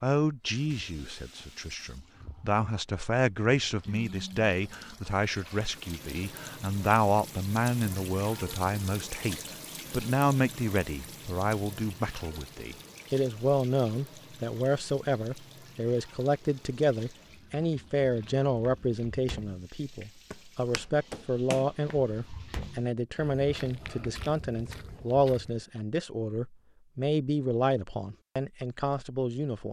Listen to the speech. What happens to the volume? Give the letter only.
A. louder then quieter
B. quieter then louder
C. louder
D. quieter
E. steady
E.